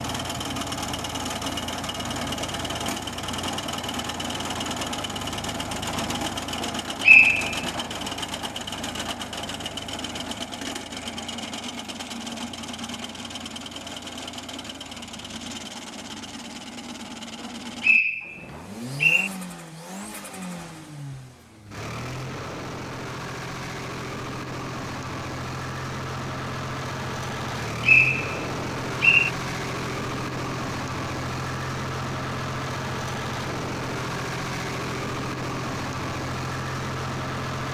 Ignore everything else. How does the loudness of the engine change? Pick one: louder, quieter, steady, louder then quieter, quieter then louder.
quieter then louder.